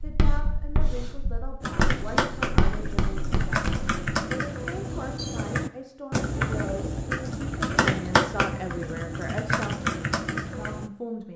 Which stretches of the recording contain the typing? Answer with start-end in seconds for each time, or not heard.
1.6-10.9.